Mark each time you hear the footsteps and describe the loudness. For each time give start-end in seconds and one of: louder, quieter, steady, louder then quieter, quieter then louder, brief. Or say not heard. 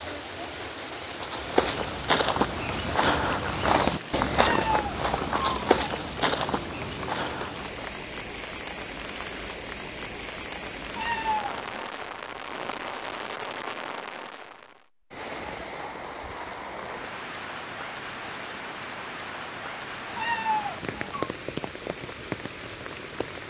1.1-8.0 quieter.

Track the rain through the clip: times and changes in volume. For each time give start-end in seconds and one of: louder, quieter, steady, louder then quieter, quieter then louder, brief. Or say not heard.
0.0-23.4 steady.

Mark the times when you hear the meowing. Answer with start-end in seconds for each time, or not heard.
4.3-5.9, 10.9-11.8, 20.1-21.3.